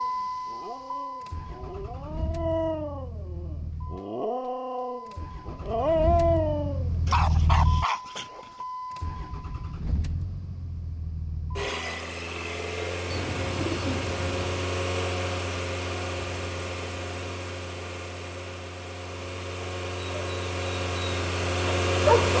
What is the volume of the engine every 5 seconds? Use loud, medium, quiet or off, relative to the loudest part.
medium, medium, medium, medium, loud.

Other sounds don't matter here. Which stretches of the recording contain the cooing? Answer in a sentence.
You can hear the cooing from 13.1 to 14.7 s.